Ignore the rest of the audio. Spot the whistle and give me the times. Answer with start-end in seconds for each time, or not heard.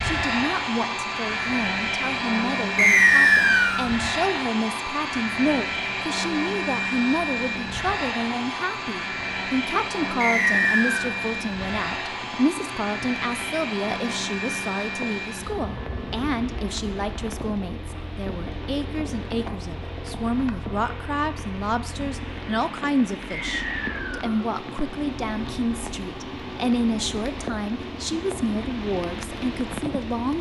2.8-3.9, 10.2-11.1, 23.3-24.4.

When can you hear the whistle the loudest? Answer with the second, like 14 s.
3 s.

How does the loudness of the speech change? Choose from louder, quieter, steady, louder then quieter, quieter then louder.
steady.